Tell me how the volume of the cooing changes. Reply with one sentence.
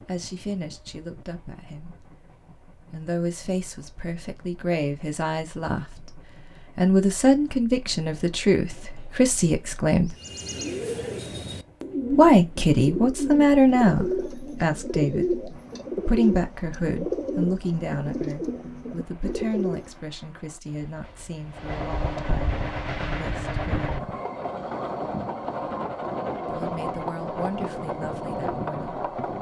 The volume of the cooing stays about the same.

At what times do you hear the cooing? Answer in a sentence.
You can hear the cooing from 10.1 to 19.9 s.